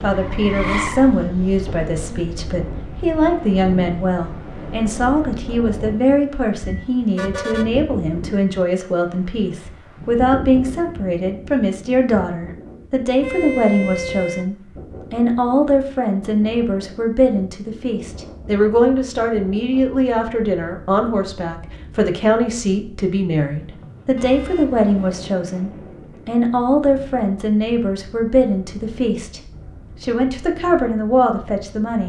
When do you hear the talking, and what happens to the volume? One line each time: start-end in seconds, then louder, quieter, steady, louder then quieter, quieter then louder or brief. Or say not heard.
0.0-29.4 steady
30.0-32.0 brief.